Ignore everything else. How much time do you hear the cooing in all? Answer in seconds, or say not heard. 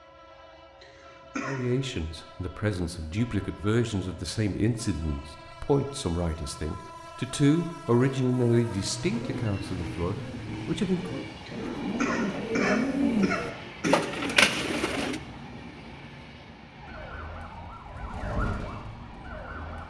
6 s.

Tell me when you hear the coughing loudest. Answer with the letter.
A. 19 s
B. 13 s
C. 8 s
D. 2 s
B.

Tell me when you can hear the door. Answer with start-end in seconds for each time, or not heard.
not heard.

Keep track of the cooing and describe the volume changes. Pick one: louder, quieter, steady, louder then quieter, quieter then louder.
louder.